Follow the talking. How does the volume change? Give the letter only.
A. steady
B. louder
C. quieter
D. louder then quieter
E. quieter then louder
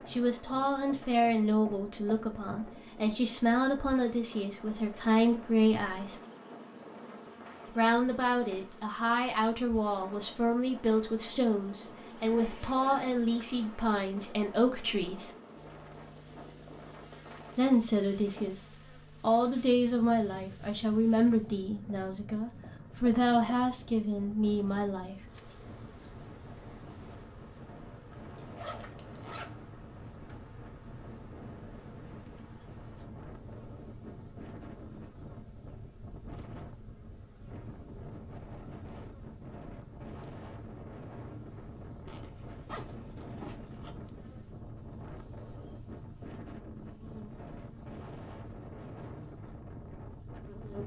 A.